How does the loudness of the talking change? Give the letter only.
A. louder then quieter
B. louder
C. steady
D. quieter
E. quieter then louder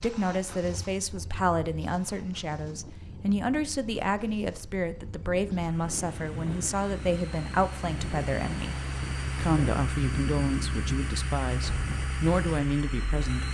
C.